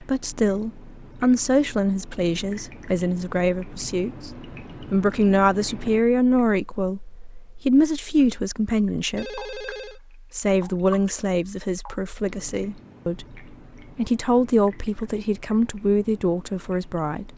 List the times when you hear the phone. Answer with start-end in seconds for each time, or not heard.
9.2-10.0.